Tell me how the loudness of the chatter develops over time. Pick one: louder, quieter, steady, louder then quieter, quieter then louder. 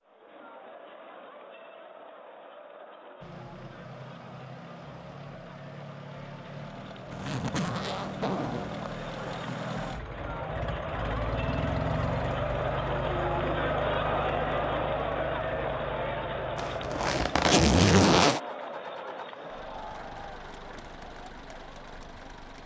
louder then quieter.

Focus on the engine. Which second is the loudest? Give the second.
12 s.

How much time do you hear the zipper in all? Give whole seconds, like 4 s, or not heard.
4 s.